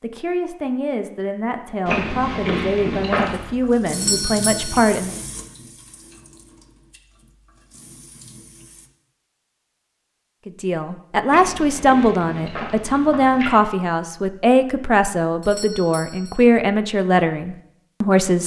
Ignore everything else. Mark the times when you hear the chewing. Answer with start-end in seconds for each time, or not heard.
1.9-3.5, 11.2-13.7.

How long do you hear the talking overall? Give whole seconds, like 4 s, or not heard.
13 s.